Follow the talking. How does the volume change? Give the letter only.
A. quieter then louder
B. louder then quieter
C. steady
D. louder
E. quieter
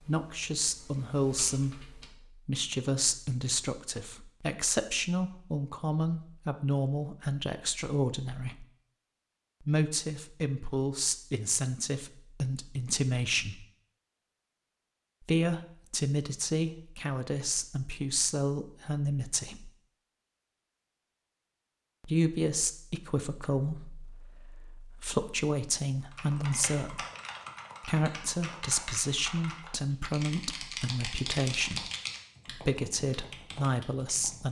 C.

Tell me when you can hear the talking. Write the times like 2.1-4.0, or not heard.
0.1-8.7, 9.6-13.7, 15.2-19.7, 22.0-27.1, 27.8-34.4.